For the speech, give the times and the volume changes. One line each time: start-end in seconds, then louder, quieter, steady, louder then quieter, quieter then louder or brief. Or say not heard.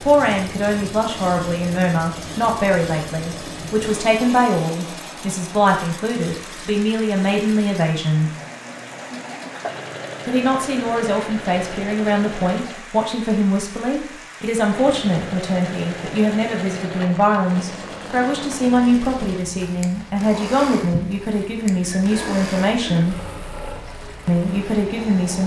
0.0-8.3 steady
10.2-23.1 steady
24.2-25.4 brief.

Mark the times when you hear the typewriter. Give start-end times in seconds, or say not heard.
not heard.